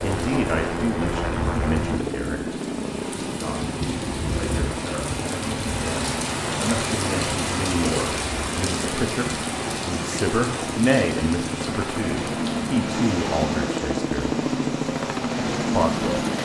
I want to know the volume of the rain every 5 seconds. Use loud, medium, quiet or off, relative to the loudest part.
medium, loud, medium, medium.